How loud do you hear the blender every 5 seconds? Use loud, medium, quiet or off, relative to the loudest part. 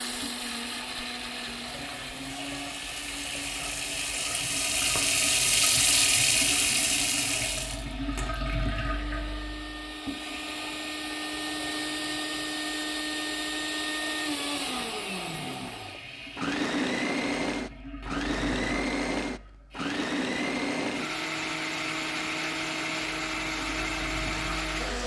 medium, medium, loud, loud, loud.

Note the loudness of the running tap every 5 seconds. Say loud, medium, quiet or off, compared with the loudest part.
medium, loud, quiet, quiet, quiet.